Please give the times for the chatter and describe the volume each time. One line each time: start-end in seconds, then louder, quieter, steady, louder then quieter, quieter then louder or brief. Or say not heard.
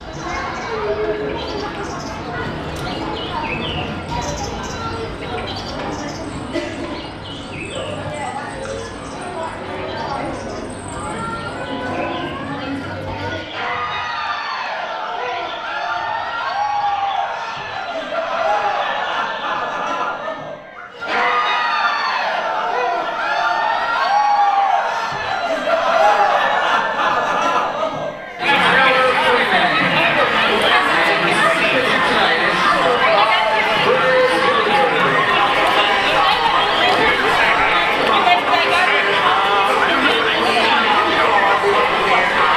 0.0-42.5 louder.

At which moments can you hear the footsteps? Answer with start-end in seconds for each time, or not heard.
not heard.